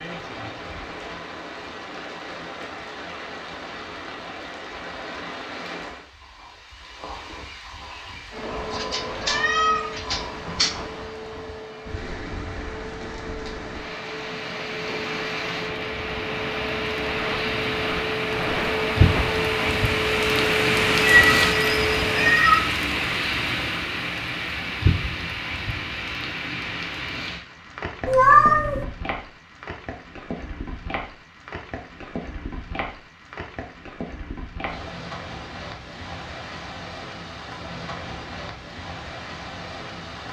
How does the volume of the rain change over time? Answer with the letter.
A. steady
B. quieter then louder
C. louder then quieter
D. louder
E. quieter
C.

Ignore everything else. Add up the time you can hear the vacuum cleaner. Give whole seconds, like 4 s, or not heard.
14 s.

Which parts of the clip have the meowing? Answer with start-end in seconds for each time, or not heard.
8.7-10.7, 21.0-22.6, 28.1-28.9.